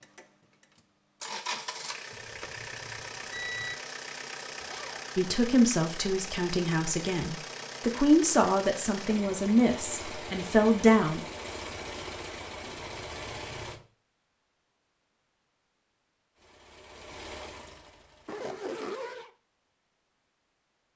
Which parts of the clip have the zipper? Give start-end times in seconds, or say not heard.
4.7-5.1, 18.2-19.3.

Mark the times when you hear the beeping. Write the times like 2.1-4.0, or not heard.
2.1-3.8, 12.9-13.8.